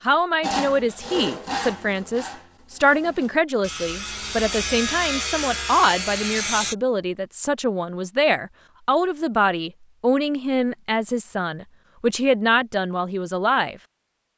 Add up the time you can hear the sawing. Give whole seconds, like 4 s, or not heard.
6 s.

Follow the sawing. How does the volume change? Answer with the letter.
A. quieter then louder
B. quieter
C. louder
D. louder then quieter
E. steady
A.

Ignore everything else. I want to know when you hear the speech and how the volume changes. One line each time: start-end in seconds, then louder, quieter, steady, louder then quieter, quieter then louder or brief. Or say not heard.
0.0-13.8 steady.